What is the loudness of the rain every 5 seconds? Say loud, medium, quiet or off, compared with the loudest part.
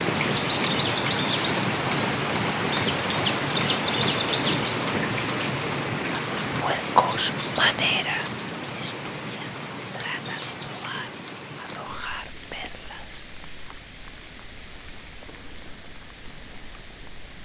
loud, medium, quiet, quiet.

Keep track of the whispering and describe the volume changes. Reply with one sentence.
The loudness of the whispering goes down.